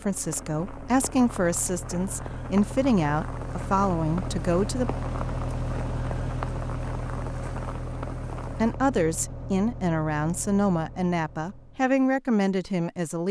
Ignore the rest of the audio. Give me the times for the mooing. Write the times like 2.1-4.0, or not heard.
not heard.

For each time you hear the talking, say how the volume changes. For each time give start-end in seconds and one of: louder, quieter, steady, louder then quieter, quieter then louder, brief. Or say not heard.
0.0-4.9 steady
8.5-13.2 steady.